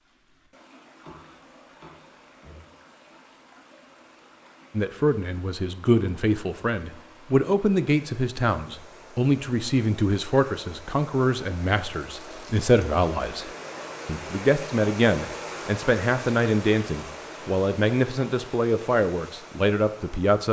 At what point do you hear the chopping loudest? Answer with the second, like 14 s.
1 s.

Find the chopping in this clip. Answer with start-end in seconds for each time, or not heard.
1.0-2.6.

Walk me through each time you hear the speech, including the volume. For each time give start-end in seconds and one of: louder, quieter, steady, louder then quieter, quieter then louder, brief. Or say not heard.
4.7-13.4 steady
14.1-20.4 steady.